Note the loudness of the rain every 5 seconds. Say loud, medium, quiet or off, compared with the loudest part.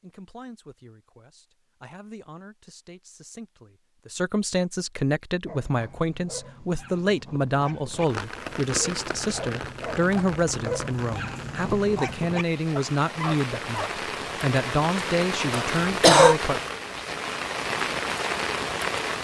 off, medium, medium, loud.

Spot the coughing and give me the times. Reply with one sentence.
You can hear the coughing from 15.5 to 16.4 s.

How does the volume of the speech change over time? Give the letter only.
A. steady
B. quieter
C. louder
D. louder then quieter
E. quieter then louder
C.